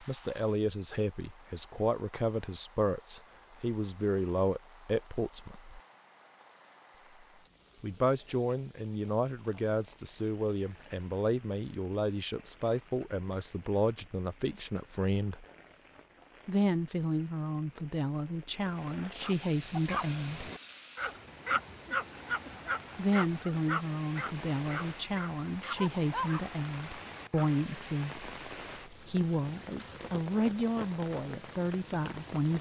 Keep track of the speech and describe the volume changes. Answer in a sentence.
The loudness of the speech stays about the same.